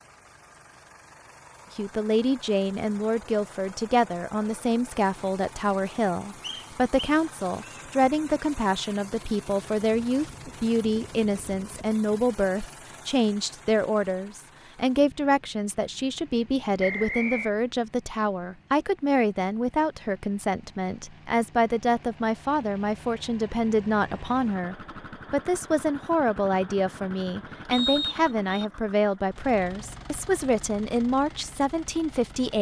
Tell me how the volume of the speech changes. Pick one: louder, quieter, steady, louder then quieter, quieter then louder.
steady.